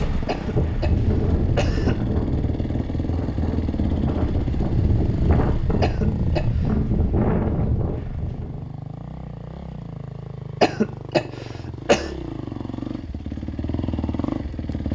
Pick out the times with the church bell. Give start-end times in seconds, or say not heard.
not heard.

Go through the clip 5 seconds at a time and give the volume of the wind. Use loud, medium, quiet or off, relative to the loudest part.
loud, loud, off.